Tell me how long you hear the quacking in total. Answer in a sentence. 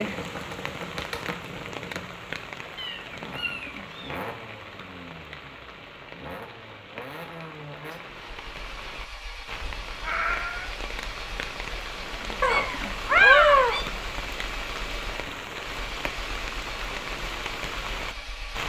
You can't hear the quacking here.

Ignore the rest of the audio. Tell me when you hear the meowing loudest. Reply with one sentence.
The volume of the meowing peaks at 13 seconds.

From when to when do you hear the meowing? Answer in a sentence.
You can hear the meowing from 2.8 to 4.2 s, from 10.0 to 10.7 s and from 12.4 to 13.8 s.